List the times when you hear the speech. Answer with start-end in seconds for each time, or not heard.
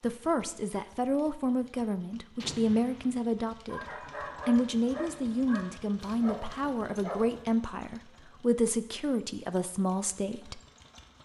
0.0-3.9, 4.5-10.6.